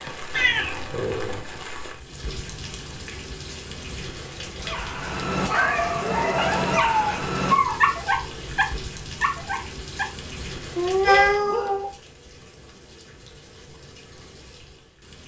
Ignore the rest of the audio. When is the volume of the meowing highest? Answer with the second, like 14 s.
11 s.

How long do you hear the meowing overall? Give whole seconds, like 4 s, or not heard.
5 s.